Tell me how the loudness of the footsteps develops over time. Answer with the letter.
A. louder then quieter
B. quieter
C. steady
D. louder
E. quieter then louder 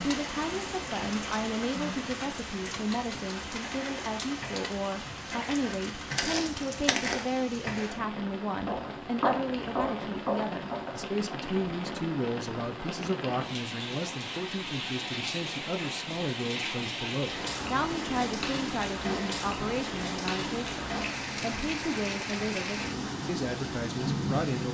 D.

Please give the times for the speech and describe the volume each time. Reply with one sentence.
You can hear the speech from 0.0 to 24.6 s, at a steady volume.